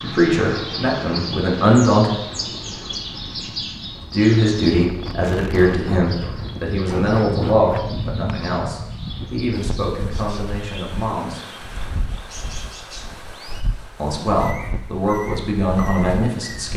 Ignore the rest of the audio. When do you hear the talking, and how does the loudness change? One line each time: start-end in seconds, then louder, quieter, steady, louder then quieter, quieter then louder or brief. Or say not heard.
0.0-2.1 brief
4.1-11.6 quieter
13.9-16.7 brief.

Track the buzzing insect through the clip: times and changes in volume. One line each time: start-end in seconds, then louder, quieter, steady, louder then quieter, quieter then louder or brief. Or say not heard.
not heard.